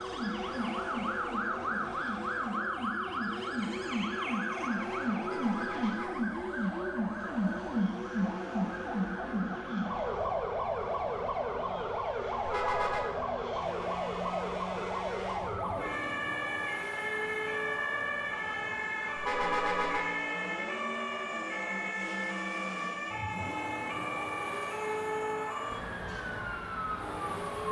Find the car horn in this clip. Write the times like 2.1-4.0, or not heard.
5.2-6.2, 12.4-13.1, 19.1-20.1.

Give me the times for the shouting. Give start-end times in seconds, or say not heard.
not heard.